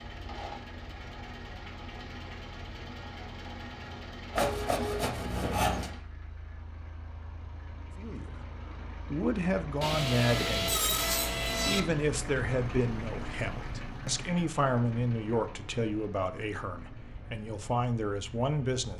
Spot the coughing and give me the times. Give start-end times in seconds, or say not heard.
not heard.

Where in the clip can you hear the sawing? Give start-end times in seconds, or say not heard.
4.3-5.9, 9.8-11.8.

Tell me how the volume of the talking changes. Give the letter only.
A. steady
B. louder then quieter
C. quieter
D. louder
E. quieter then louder
A.